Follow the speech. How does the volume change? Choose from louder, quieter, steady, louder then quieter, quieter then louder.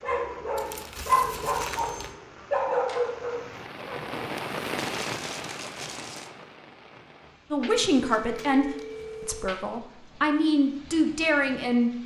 quieter then louder.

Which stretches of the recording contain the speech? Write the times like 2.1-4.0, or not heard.
7.5-11.9.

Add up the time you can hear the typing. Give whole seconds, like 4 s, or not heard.
not heard.